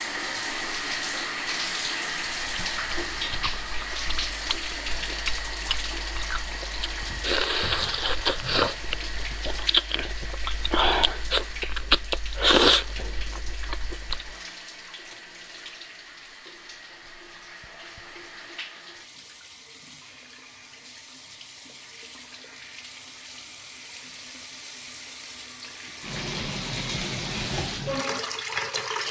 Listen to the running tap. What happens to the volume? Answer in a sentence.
The loudness of the running tap goes down, then up.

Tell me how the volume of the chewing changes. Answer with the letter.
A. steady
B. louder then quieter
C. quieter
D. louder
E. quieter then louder
D.